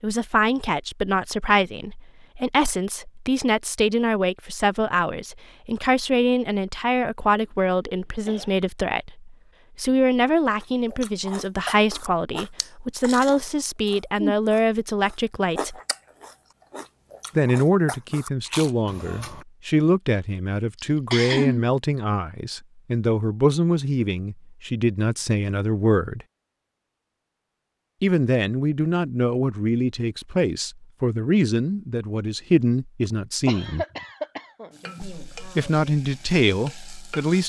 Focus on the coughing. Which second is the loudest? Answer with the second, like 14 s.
21 s.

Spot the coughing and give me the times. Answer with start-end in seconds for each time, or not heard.
7.3-8.6, 20.8-21.6, 33.5-34.7.